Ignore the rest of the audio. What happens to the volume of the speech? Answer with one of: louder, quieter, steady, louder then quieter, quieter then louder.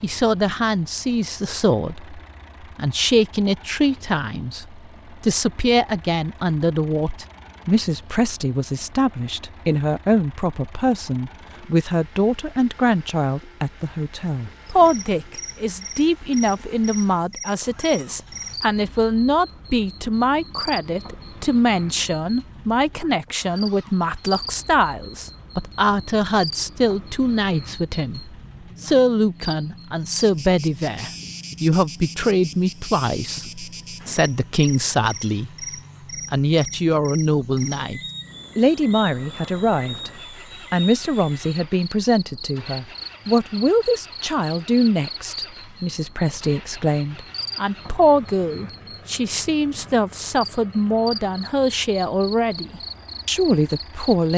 steady.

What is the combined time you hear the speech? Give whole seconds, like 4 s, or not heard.
53 s.